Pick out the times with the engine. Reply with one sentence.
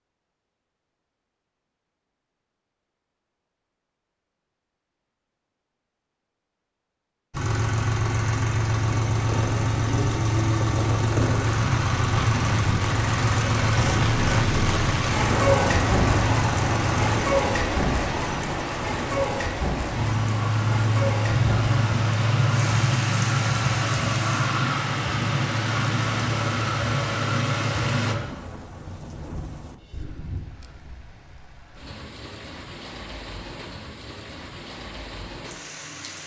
You can hear the engine from 7.3 to 28.1 s.